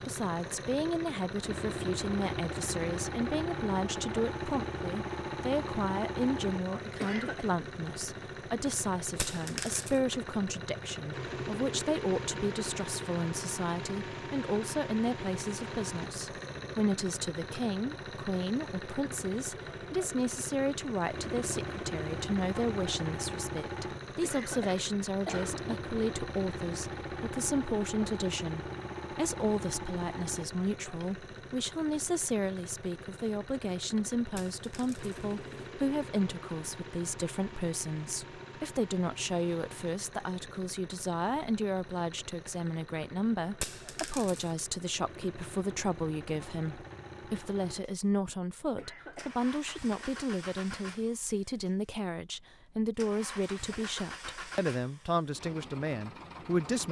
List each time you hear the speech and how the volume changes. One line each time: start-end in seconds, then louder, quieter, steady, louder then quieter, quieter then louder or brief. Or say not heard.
0.1-56.8 steady.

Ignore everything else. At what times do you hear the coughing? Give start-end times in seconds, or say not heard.
6.8-7.5, 24.1-25.7, 48.6-49.6.